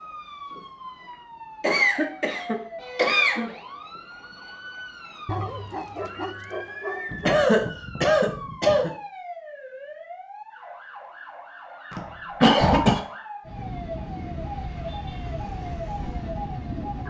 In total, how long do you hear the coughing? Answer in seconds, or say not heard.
5 s.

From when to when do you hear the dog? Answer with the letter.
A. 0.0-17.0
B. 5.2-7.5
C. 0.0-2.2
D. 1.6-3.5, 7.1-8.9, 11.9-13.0
B.